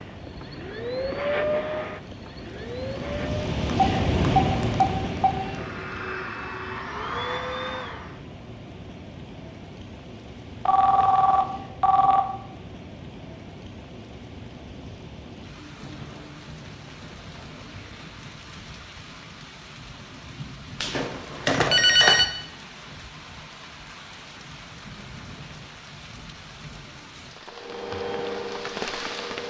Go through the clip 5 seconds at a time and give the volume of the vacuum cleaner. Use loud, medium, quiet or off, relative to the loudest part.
loud, loud, off, off, off, loud.